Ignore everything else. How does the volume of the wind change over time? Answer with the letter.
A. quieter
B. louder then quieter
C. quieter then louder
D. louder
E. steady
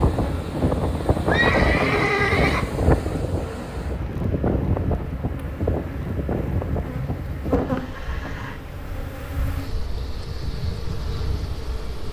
A.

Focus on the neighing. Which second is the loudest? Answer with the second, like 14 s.
2 s.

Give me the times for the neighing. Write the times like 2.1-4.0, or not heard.
1.3-2.6, 7.0-8.6.